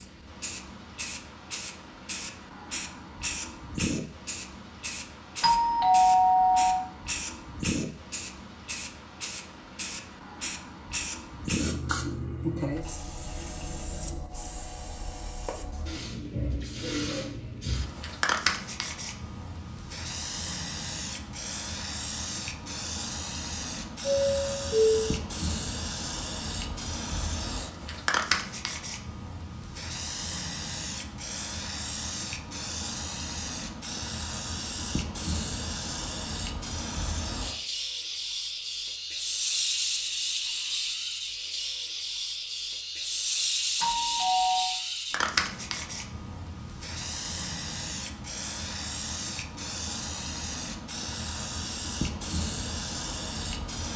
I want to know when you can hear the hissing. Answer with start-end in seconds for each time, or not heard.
0.0-53.9.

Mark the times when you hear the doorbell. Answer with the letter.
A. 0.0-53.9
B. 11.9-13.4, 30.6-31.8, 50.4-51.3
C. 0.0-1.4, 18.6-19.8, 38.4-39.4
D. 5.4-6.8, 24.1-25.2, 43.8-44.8
D.